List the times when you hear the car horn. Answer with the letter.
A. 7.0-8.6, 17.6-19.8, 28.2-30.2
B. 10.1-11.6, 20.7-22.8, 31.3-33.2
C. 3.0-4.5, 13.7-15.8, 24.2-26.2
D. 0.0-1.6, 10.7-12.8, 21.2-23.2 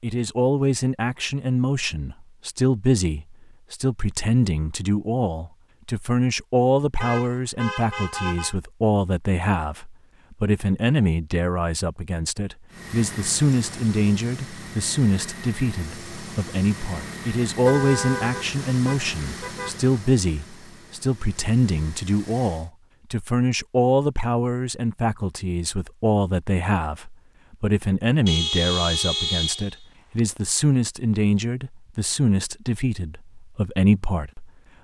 A.